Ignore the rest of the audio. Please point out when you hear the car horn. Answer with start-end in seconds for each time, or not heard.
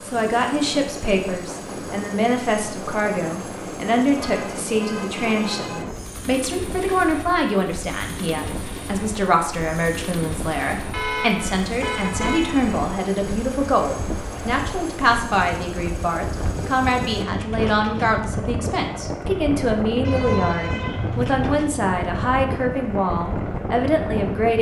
4.2-5.8, 10.9-12.8, 20.0-21.4.